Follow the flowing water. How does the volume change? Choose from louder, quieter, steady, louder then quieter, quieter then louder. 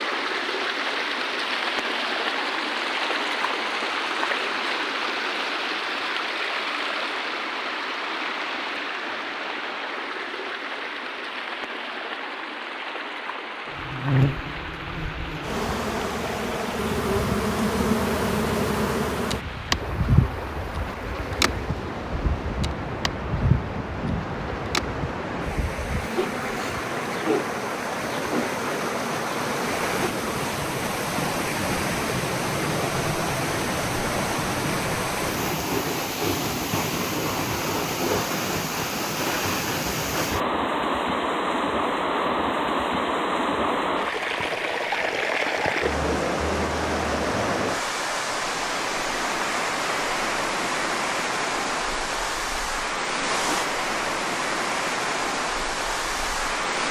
quieter then louder.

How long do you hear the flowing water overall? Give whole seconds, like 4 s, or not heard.
57 s.